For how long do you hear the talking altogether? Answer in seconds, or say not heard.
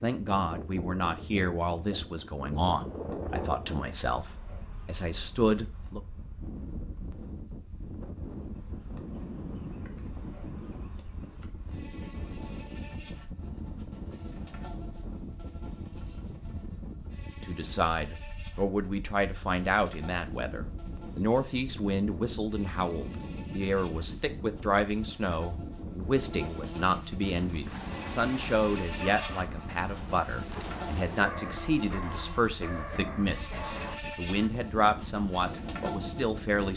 25 s.